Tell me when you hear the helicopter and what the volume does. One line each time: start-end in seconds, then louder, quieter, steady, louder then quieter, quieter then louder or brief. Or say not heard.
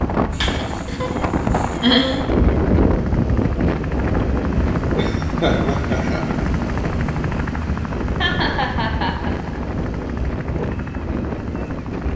0.0-12.1 louder then quieter.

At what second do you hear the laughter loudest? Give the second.
2 s.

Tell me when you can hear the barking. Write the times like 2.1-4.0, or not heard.
not heard.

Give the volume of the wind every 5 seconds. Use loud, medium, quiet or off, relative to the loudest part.
loud, medium, medium.